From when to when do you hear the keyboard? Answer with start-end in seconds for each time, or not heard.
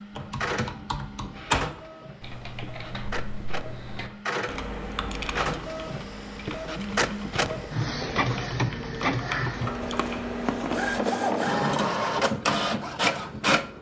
0.1-11.0.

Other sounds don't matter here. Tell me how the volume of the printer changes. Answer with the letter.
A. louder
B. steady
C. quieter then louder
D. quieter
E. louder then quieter
A.